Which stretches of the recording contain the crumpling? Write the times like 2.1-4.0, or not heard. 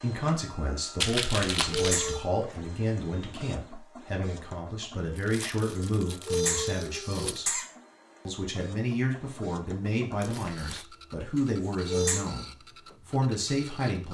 1.0-2.1, 5.2-7.5, 10.2-10.8.